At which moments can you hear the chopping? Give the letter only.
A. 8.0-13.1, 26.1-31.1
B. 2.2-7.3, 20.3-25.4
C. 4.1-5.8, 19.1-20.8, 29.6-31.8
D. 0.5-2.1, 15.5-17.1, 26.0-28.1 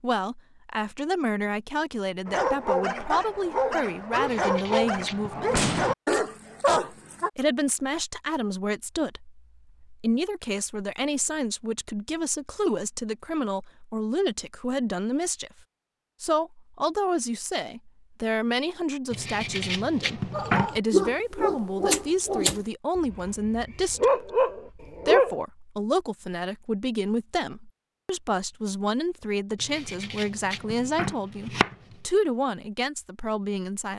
C.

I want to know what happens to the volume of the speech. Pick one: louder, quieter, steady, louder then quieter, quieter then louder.
steady.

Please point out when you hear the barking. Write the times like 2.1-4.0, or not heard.
2.2-7.3, 20.3-25.4.